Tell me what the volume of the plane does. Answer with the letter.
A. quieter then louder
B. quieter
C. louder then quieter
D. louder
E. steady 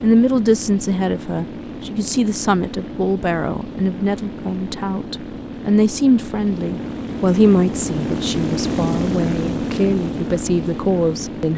D.